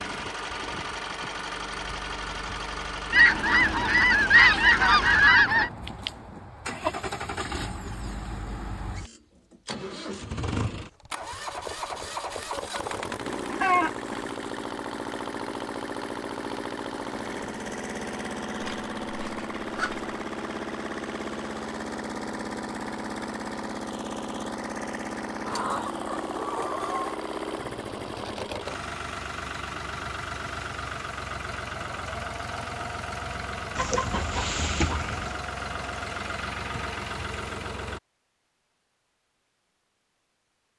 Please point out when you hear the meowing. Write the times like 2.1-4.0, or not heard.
not heard.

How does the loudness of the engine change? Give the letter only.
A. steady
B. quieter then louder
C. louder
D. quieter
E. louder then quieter
A.